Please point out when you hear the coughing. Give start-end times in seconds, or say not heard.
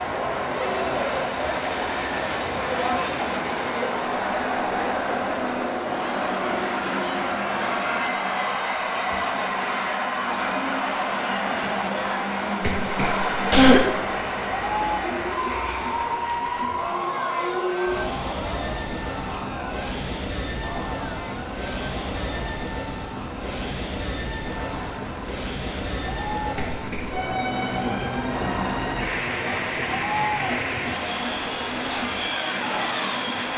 12.6-13.8, 26.6-27.2.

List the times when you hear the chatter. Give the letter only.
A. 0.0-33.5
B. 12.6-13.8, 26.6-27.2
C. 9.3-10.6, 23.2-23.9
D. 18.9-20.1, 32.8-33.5
A.